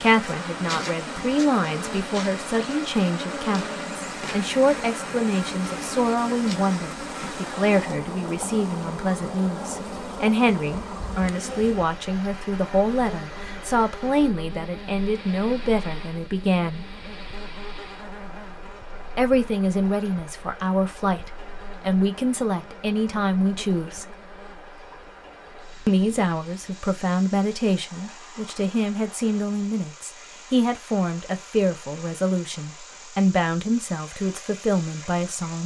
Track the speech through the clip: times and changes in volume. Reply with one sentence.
You can hear the speech from 0.0 to 16.9 s, at a steady volume; from 19.1 to 24.2 s, at a steady volume; and from 25.9 to 35.6 s, at a steady volume.